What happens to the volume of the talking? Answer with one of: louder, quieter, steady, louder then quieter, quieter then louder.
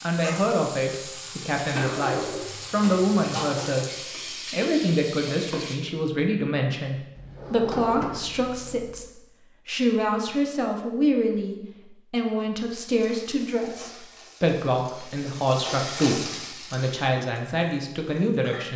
steady.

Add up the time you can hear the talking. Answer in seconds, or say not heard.
18 s.